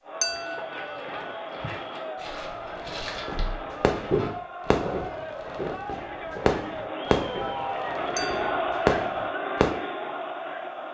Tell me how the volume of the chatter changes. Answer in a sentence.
The volume of the chatter goes up.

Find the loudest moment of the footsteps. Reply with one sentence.
The volume of the footsteps peaks at 4 seconds.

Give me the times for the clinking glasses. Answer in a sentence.
You can hear the clinking glasses from 0.2 to 0.8 s and from 8.2 to 8.6 s.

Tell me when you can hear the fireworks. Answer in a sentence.
You can hear the fireworks from 2.9 to 9.8 s.